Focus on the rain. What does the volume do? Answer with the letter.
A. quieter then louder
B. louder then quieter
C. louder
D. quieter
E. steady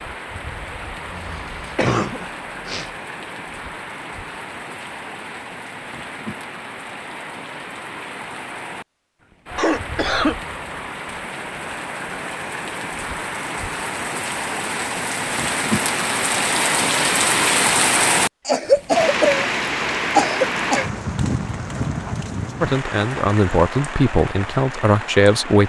B.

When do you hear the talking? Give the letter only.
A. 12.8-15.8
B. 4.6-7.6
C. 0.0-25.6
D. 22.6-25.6
D.